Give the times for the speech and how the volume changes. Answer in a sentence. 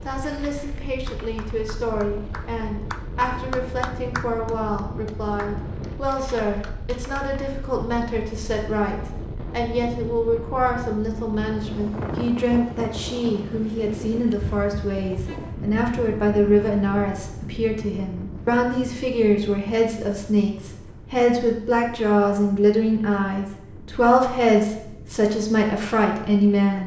The speech can be heard from 0.0 to 26.8 s, getting louder.